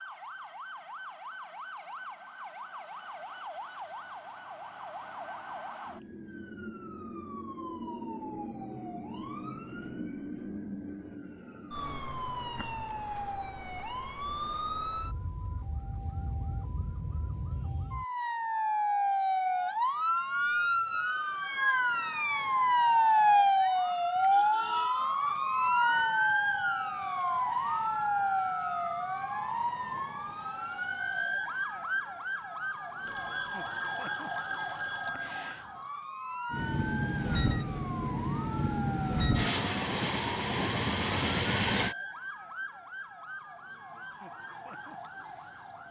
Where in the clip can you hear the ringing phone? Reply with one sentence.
The ringing phone can be heard from 33.0 to 35.6 s.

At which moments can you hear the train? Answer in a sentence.
The train can be heard from 36.5 to 42.0 s.